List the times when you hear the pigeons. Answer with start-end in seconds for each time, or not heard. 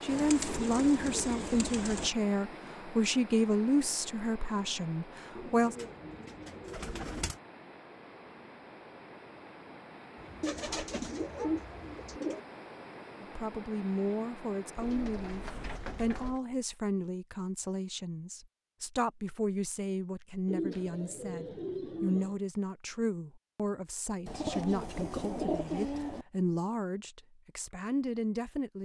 0.1-2.1, 5.3-7.3, 10.4-12.4, 14.8-16.4, 20.4-22.4, 24.2-26.2.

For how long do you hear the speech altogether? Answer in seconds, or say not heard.
21 s.